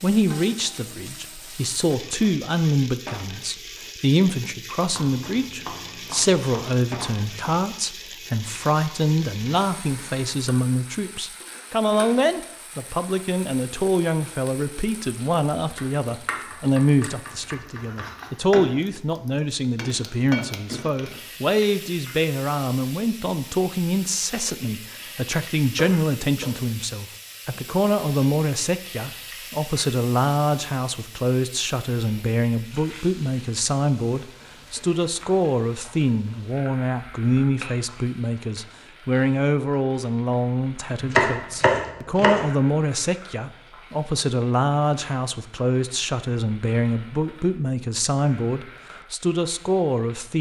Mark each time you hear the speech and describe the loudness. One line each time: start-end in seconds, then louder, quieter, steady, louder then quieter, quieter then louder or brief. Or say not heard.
0.0-50.3 steady.